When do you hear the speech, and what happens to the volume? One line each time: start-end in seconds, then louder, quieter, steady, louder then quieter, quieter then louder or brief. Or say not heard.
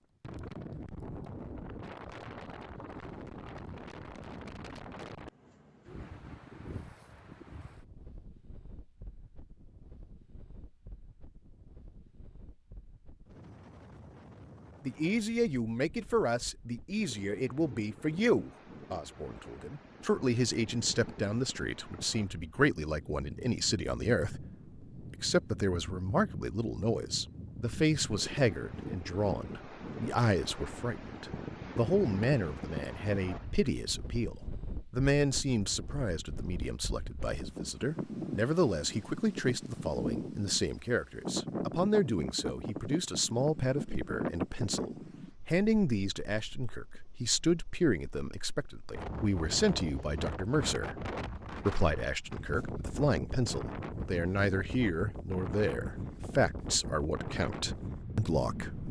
14.8-58.8 steady.